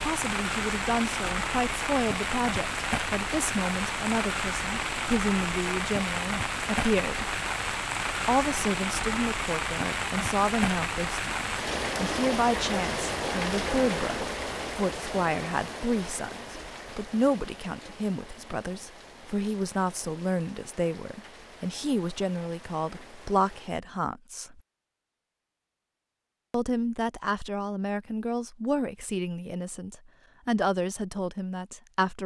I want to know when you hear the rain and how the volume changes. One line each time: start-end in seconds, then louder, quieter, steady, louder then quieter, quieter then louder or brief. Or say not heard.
0.0-23.8 quieter.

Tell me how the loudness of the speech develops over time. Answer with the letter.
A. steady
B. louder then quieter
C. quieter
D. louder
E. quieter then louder
A.